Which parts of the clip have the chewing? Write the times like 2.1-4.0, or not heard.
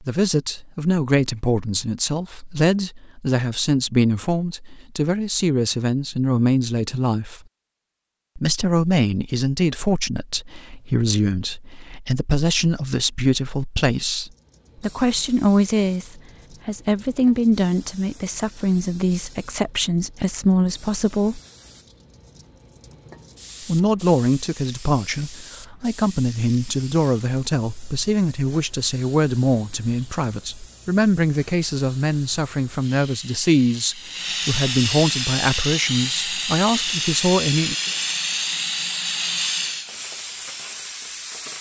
not heard.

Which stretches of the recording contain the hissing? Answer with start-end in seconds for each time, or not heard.
14.3-41.5.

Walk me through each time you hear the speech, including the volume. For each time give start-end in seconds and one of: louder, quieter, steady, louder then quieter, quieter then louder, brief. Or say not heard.
0.0-7.4 steady
8.3-21.4 steady
23.6-37.8 steady.